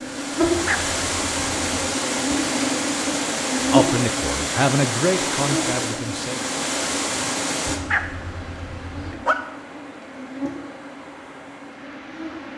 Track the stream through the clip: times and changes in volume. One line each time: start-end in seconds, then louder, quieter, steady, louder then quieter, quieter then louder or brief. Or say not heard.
0.0-12.5 quieter.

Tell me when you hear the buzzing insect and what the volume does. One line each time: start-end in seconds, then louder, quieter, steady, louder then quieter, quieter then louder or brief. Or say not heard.
0.0-12.5 quieter.